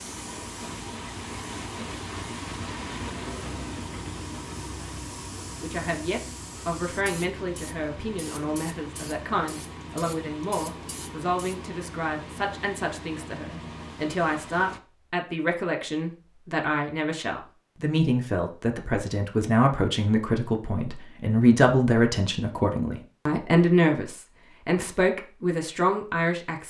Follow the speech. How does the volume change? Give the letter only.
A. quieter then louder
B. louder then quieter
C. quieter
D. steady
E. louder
E.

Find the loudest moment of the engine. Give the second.
3 s.